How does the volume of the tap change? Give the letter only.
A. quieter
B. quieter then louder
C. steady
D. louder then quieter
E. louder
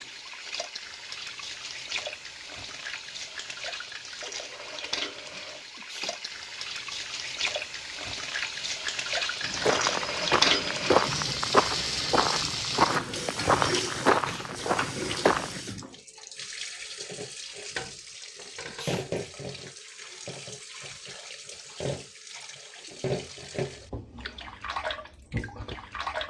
D.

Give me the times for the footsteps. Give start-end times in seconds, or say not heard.
9.4-15.6.